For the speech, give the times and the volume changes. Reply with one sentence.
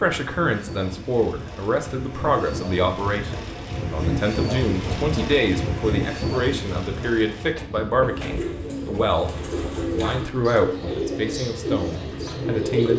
You can hear the speech from 0.0 to 12.9 s, at a steady volume.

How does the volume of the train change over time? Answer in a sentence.
The volume of the train goes up, then down.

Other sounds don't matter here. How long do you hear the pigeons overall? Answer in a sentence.
You can hear the pigeons for 5 seconds altogether.